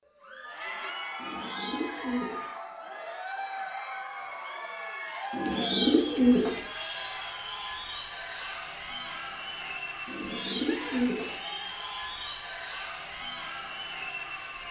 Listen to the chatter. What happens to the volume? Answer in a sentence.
The loudness of the chatter stays about the same.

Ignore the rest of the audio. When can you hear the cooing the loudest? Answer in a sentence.
The loudest moment of the cooing is at 6 seconds.